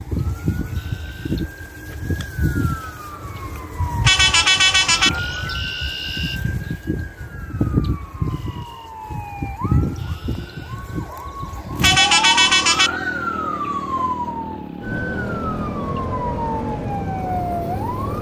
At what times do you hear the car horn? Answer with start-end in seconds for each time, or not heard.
4.0-5.2, 11.8-13.0.